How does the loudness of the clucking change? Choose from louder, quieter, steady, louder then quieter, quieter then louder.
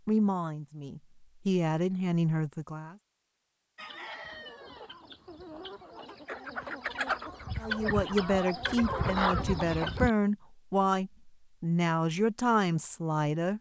louder.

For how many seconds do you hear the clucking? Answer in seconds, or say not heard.
6 s.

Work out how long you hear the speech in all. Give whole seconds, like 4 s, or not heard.
9 s.